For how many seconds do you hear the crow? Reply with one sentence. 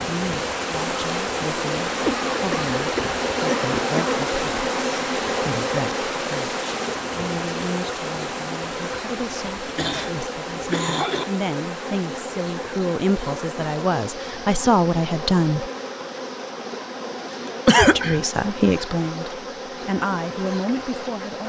You can't hear the crow here.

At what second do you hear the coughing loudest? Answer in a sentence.
The loudest moment of the coughing is at 18 seconds.